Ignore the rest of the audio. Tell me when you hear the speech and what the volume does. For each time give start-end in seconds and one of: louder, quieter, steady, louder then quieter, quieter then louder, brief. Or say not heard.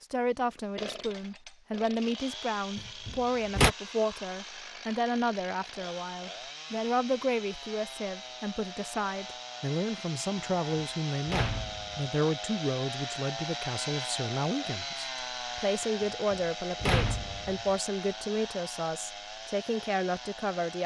0.0-20.8 steady.